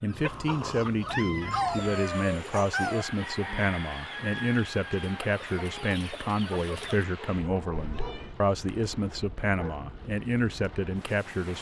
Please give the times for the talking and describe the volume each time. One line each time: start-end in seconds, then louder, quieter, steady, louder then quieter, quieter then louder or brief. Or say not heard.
0.0-11.5 steady.